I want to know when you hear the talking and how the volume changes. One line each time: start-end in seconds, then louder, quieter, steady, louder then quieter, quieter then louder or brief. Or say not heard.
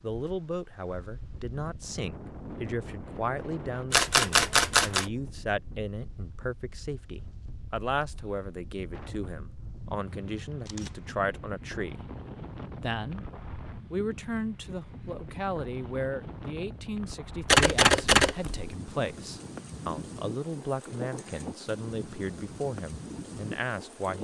0.0-12.0 steady
12.8-13.2 brief
13.9-24.1 steady.